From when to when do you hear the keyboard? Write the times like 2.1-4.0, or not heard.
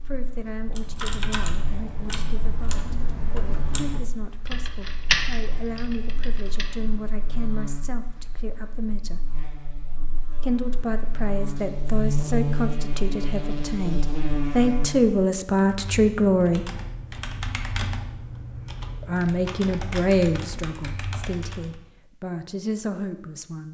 0.6-6.8, 15.6-21.8.